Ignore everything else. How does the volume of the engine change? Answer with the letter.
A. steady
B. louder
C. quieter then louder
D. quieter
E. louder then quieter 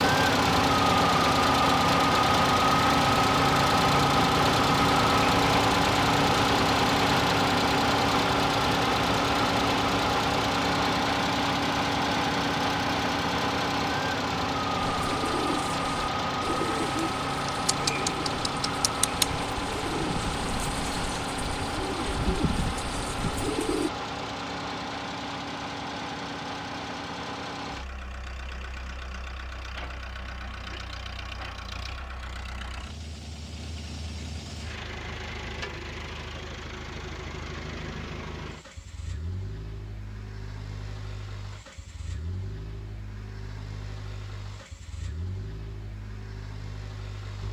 D.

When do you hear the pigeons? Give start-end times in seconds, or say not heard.
14.8-23.9.